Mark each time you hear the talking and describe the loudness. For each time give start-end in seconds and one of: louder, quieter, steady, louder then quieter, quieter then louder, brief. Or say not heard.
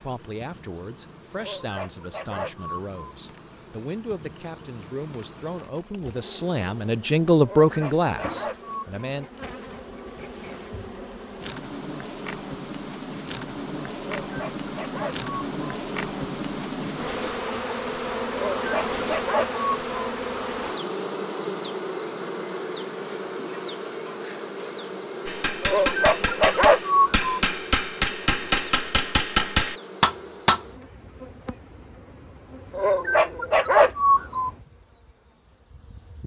0.0-9.2 louder.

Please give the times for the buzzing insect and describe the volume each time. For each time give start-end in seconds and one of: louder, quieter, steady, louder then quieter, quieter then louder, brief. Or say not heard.
0.0-36.2 louder then quieter.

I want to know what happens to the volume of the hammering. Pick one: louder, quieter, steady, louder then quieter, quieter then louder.
louder.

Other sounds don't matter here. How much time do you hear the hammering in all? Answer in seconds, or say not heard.
5 s.